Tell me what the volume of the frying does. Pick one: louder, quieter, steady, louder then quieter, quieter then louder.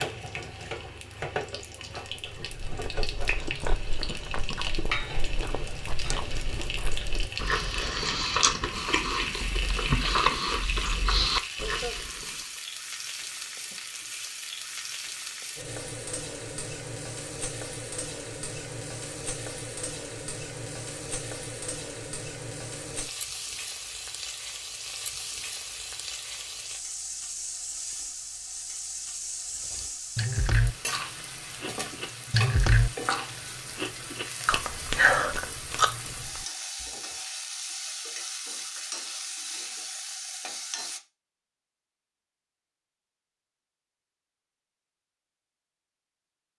steady.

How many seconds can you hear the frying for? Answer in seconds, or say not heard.
41 s.